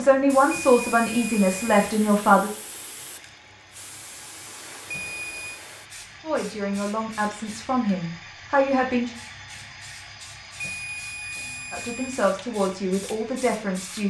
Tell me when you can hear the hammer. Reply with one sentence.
You can't hear the hammer here.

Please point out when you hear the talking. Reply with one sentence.
You can hear the talking from 0.0 to 2.5 s, from 6.2 to 9.1 s and from 11.7 to 14.0 s.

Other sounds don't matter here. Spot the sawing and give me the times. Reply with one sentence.
The sawing can't be heard in this clip.